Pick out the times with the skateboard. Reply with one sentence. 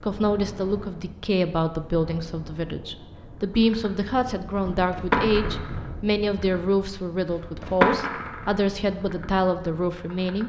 The skateboard can be heard from 3.4 to 10.4 s.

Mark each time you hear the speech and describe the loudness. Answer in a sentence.
You can hear the speech from 0.0 to 10.4 s, at a steady volume.